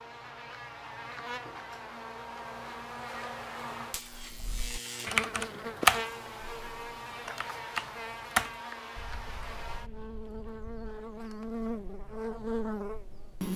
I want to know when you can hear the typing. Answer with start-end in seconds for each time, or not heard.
4.1-11.4.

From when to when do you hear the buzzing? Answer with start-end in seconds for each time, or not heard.
0.0-13.5.